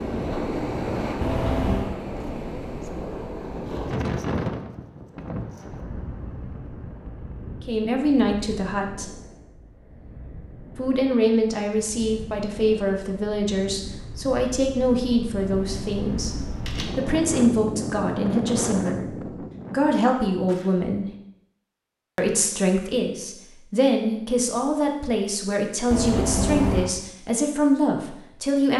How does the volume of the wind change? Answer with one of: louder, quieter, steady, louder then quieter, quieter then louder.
quieter then louder.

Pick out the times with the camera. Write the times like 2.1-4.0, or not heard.
1.2-1.9, 15.3-17.2, 25.9-26.9.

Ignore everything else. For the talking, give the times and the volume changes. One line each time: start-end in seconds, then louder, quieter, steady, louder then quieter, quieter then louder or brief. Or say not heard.
7.6-9.2 brief
10.8-21.1 steady
22.1-28.7 steady.